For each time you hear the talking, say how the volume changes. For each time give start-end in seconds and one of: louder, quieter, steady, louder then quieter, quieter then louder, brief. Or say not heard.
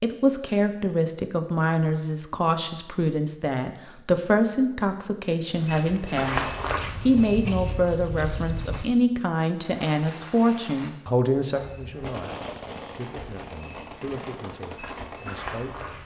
0.0-15.9 quieter.